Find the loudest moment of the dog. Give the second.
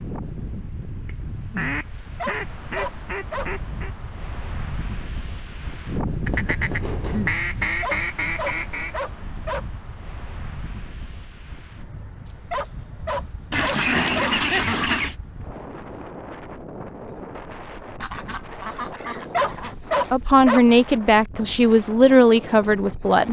20 s.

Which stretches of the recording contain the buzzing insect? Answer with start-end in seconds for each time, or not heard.
not heard.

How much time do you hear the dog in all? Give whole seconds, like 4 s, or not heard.
7 s.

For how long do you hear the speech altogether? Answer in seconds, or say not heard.
3 s.